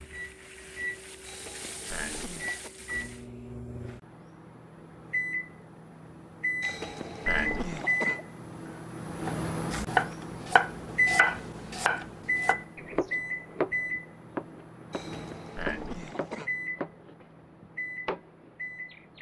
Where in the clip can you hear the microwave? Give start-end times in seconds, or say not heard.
0.0-19.1.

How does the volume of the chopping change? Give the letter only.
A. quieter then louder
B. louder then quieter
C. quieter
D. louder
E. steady
C.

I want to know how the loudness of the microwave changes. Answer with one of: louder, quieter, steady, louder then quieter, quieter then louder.
louder then quieter.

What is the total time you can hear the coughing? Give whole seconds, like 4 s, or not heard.
5 s.